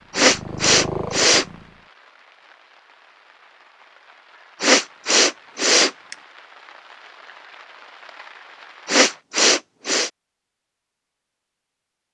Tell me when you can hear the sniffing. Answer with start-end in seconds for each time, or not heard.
0.1-1.4, 4.6-6.2, 8.8-10.1.